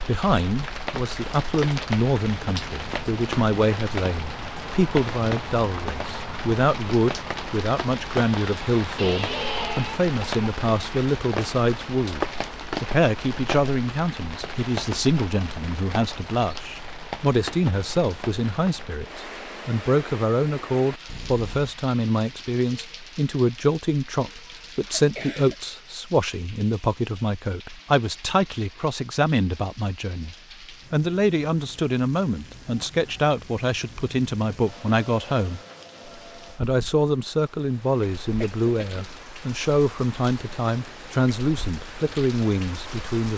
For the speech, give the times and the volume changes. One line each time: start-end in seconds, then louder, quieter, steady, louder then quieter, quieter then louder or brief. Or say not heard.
0.0-35.6 steady
36.5-43.3 steady.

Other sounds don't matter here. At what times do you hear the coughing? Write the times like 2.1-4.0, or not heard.
8.9-10.4, 24.9-25.6, 38.4-39.1.